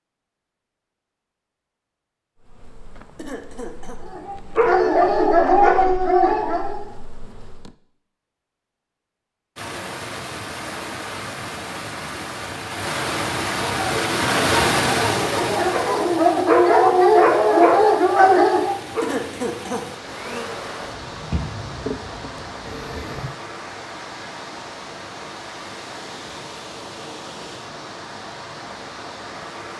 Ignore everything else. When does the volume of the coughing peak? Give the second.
19 s.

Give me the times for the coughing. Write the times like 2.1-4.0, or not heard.
3.1-4.0, 19.0-19.9.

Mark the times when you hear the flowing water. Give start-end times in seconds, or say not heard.
9.6-29.7.